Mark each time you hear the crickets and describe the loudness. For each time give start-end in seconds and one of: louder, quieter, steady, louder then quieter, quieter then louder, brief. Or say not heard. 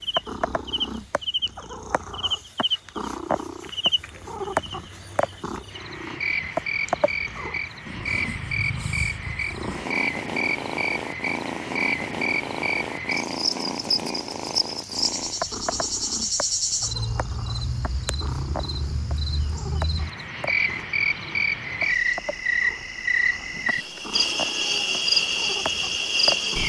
0.0-26.6 louder.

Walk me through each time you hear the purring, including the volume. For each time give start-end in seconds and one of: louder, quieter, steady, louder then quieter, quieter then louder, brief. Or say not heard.
0.1-26.6 quieter.